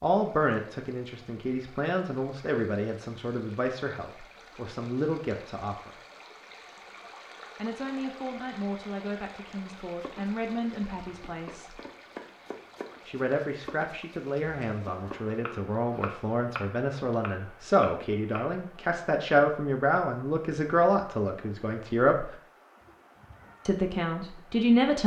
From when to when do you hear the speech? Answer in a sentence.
The speech can be heard from 0.0 to 5.9 s, from 7.5 to 11.8 s, from 13.1 to 22.3 s and from 23.6 to 25.0 s.